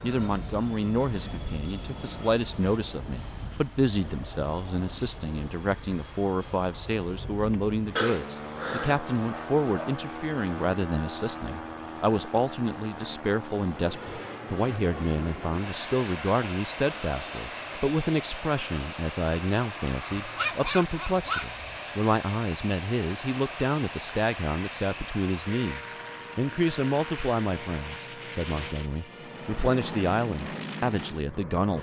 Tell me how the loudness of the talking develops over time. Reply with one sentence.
The volume of the talking stays about the same.